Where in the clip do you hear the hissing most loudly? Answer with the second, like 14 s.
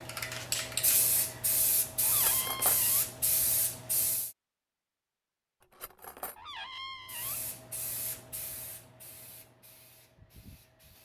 1 s.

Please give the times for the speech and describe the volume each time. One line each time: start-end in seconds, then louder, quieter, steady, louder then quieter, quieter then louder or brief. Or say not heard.
not heard.